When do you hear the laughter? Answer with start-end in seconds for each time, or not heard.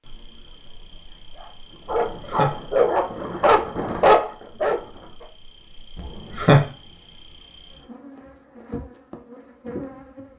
1.9-2.5, 6.0-6.6.